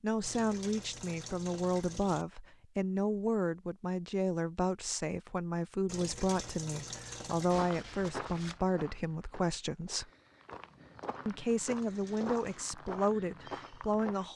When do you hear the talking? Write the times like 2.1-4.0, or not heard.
0.0-10.1, 11.2-14.3.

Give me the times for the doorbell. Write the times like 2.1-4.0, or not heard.
not heard.